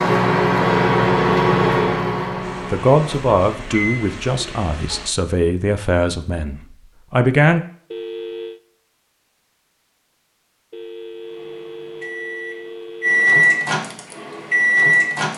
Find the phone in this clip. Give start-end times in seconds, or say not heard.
0.6-1.8, 7.9-8.6, 10.7-13.3.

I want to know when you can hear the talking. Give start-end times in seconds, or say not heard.
2.7-7.6.